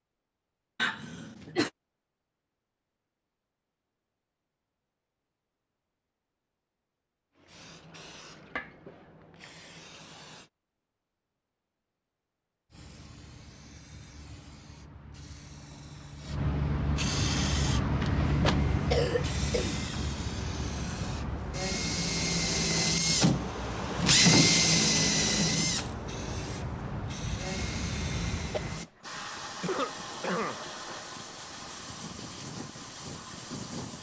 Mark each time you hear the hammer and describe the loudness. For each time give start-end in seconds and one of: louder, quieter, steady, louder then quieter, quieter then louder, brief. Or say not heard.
not heard.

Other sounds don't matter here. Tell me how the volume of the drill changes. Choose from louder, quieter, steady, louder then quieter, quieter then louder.
louder then quieter.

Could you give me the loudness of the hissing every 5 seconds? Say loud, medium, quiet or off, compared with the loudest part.
off, quiet, quiet, loud, medium, medium, medium.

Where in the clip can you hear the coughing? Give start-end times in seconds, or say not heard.
0.8-1.7, 18.9-19.8, 29.6-30.6.